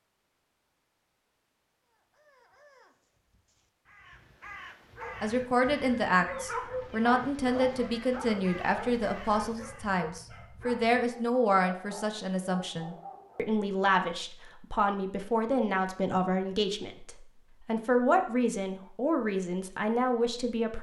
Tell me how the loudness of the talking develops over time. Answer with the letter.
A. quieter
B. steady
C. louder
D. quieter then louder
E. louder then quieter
B.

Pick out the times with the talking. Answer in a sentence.
The talking can be heard from 5.2 to 20.7 s.